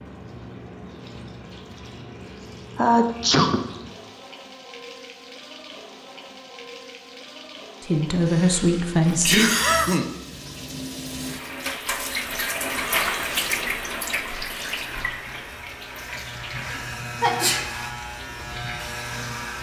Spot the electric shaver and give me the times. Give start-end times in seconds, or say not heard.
14.7-19.5.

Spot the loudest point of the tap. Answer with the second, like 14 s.
13 s.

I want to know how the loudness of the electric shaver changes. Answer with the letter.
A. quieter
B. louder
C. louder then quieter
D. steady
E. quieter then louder
B.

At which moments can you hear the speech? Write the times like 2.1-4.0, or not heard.
7.8-9.4.